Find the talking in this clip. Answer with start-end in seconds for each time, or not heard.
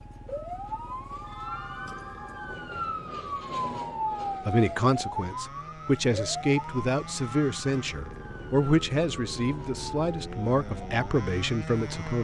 4.5-12.1.